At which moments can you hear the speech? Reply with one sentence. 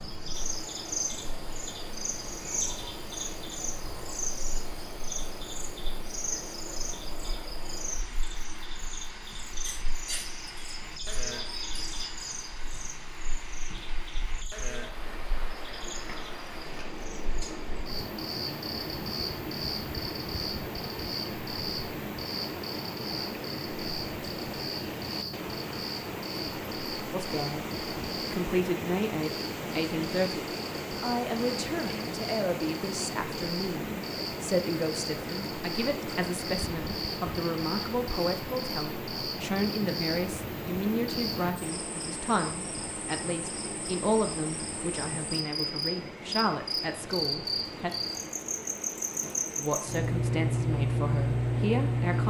The speech can be heard from 27.1 to 27.6 s, from 28.3 to 47.9 s and from 49.5 to 52.2 s.